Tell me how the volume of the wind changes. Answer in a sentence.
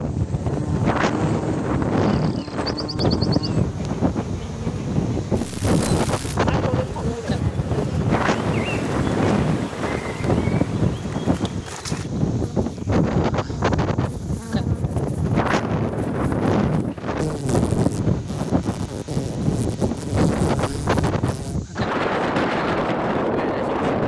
The volume of the wind stays about the same.